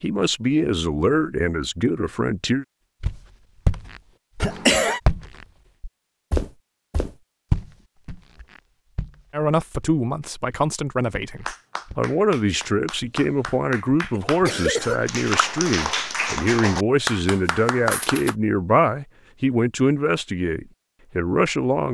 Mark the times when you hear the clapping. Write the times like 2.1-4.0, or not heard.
11.4-18.4.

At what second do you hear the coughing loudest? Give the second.
5 s.